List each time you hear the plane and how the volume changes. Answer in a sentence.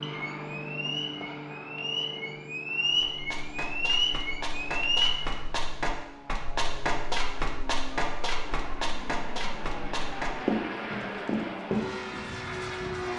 The plane can be heard from 0.0 to 13.1 s, getting quieter then louder.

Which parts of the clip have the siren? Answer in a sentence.
The siren can be heard from 0.0 to 5.2 s.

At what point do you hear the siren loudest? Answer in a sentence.
The loudest moment of the siren is at 5 seconds.